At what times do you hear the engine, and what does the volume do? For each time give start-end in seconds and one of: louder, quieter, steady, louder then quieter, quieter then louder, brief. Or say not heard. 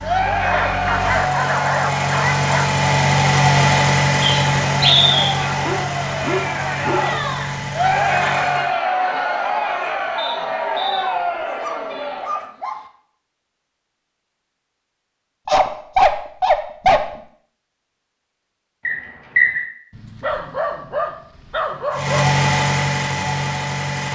0.0-8.7 louder then quieter
21.9-24.1 brief.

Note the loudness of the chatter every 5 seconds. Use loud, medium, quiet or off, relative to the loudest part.
loud, loud, loud, off, off.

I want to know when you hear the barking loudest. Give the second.
16 s.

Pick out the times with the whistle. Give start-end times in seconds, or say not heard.
4.2-5.3, 10.2-11.1, 18.9-19.6.